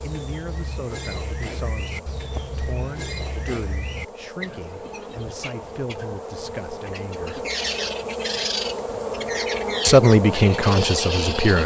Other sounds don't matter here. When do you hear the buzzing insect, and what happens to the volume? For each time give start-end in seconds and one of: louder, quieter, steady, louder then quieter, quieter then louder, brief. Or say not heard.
0.0-11.6 louder.